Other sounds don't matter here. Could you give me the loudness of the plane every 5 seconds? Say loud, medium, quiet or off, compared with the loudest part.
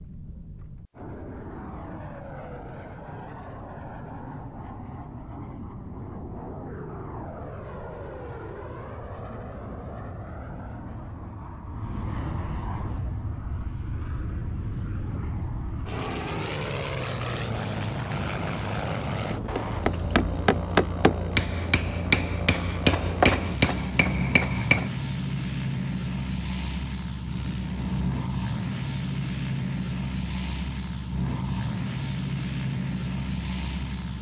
medium, medium, medium, loud, loud, loud, loud.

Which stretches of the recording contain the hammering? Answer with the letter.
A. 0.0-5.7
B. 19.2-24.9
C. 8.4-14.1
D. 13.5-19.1
B.